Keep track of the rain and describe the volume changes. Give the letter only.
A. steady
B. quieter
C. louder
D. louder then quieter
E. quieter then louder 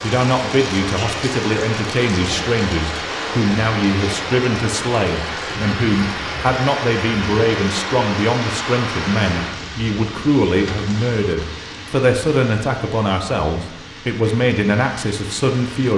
B.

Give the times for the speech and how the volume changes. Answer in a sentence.
You can hear the speech from 0.0 to 15.9 s, at a steady volume.